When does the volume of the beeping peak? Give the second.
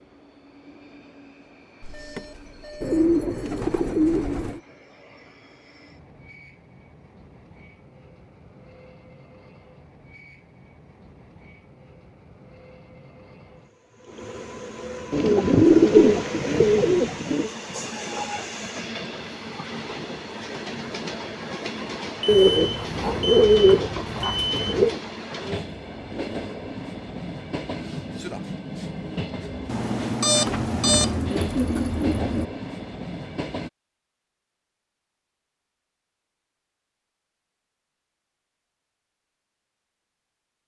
30 s.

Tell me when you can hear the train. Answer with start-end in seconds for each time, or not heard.
0.0-33.7.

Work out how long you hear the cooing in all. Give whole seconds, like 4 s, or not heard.
9 s.